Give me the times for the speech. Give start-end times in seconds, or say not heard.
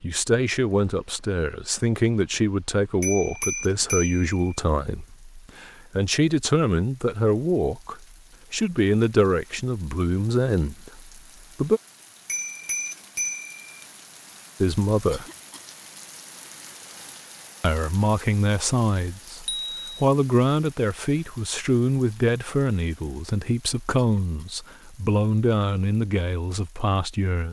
0.0-11.8, 14.6-15.2, 17.6-27.4.